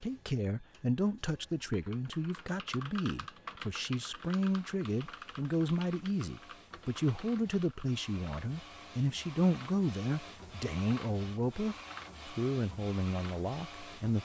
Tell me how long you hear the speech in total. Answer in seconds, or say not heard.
14 s.